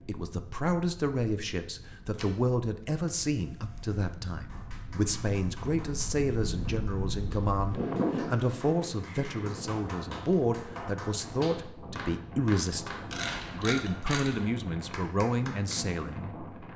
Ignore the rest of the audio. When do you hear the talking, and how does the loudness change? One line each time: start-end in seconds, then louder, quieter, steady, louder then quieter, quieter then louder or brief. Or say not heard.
0.0-16.4 steady.